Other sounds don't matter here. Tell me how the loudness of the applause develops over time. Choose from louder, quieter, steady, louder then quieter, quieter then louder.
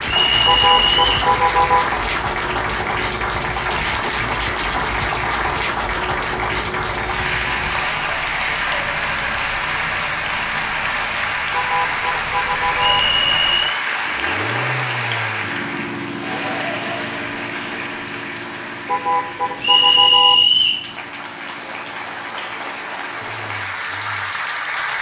quieter.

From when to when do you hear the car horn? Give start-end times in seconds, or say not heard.
0.5-1.9, 11.5-13.0, 18.9-20.4.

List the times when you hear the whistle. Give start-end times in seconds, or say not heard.
0.1-1.3, 12.8-13.8, 19.6-20.9.